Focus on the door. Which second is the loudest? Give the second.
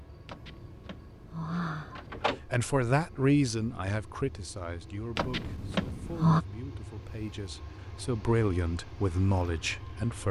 6 s.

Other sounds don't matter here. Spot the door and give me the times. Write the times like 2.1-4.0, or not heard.
0.2-2.4, 5.2-6.5.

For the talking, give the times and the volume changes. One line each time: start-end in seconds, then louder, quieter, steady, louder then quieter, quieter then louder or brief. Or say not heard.
2.5-10.2 quieter then louder.